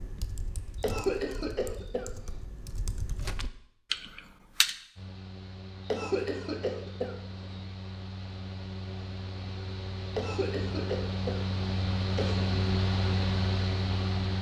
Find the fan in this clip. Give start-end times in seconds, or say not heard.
5.0-14.3.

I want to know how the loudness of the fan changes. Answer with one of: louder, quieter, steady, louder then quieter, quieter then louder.
louder.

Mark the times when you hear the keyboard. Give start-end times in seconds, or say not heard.
0.0-4.8.